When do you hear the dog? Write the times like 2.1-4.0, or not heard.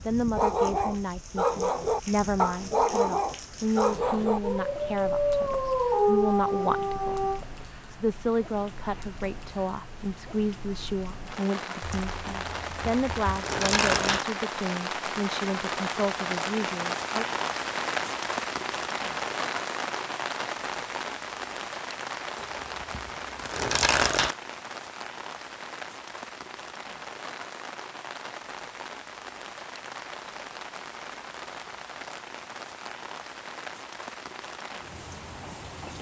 0.3-7.4.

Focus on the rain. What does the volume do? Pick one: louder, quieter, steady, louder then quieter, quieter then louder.
louder then quieter.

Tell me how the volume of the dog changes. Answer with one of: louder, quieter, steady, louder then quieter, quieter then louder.
steady.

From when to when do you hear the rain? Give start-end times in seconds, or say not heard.
0.0-35.9.